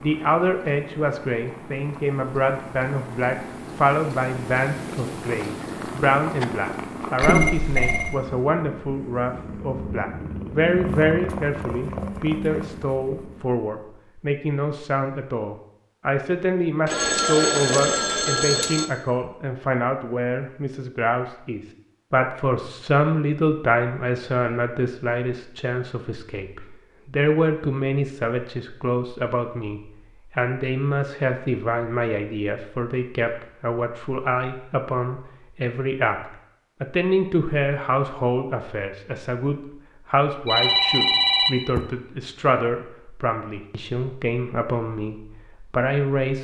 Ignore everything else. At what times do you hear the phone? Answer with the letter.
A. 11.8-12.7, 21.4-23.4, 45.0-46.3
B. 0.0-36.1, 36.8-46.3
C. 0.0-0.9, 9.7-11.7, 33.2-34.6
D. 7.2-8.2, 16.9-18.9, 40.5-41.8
D.